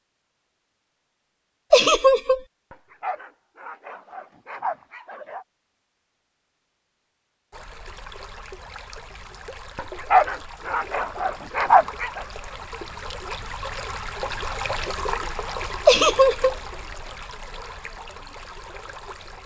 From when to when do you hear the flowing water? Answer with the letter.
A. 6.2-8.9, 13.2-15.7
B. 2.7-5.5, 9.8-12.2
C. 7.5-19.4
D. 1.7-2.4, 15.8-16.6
C.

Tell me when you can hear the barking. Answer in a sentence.
You can hear the barking from 2.7 to 5.5 s and from 9.8 to 12.2 s.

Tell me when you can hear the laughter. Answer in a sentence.
The laughter can be heard from 1.7 to 2.4 s and from 15.8 to 16.6 s.